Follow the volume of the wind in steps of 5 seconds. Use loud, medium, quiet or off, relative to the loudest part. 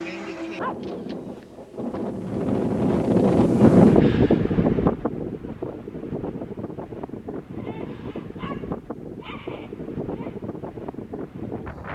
loud, quiet, quiet.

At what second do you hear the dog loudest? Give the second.
1 s.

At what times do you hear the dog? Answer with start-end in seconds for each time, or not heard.
0.6-2.0, 7.5-10.3.